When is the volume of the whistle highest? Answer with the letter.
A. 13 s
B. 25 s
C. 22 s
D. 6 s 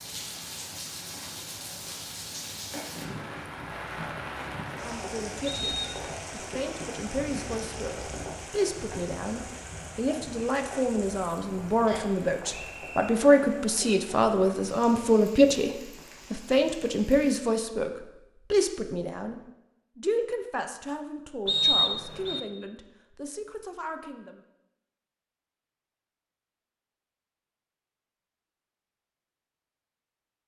C.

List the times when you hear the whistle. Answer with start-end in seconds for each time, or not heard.
5.5-6.0, 11.8-13.1, 21.4-22.4.